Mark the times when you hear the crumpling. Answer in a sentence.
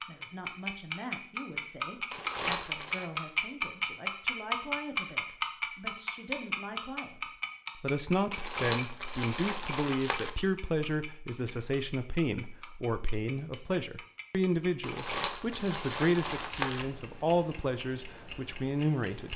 The crumpling can be heard from 2.1 to 3.0 s, from 8.3 to 10.3 s and from 14.8 to 16.9 s.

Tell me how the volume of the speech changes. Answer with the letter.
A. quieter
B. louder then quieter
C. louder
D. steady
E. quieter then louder
C.